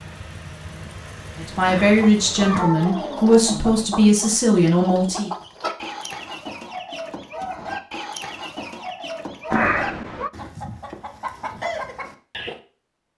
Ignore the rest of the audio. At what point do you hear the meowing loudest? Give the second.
10 s.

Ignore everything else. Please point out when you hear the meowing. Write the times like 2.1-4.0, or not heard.
1.6-3.4, 9.5-10.3.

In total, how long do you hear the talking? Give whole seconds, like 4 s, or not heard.
4 s.